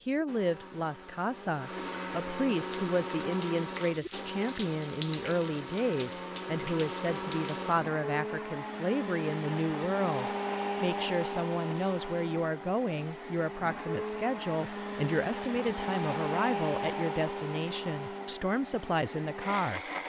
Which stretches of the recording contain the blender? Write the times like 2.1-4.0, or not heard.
0.0-20.0.